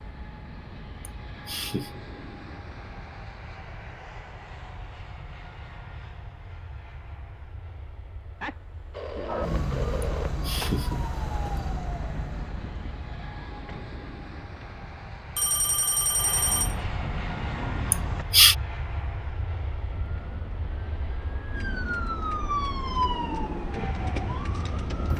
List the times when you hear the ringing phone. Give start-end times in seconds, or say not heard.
8.4-10.3, 15.3-16.8.